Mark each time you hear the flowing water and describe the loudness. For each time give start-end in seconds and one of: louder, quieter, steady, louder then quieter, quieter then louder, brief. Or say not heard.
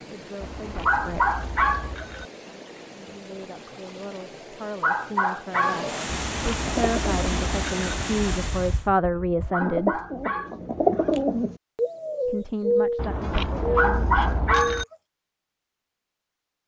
0.0-8.9 louder.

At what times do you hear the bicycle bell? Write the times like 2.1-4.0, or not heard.
0.4-2.3, 6.0-8.0, 12.9-14.8.